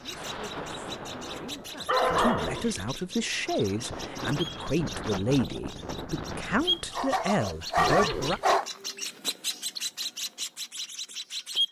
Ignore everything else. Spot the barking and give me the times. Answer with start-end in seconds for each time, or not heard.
1.1-2.9, 6.9-8.7.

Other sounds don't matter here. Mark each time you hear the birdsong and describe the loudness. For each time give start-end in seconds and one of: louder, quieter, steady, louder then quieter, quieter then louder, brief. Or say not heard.
0.0-11.6 louder.